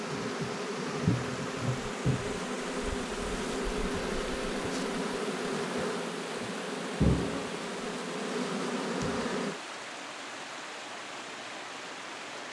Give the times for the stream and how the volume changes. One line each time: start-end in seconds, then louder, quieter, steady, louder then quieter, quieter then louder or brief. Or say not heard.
0.0-12.4 steady.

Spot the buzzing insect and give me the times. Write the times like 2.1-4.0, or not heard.
0.0-9.6.